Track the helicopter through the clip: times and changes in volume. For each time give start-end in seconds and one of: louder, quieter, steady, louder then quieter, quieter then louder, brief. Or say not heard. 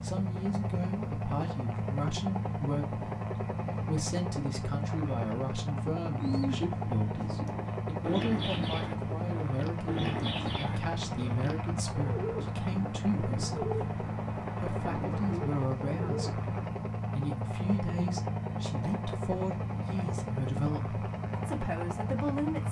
0.0-22.6 steady.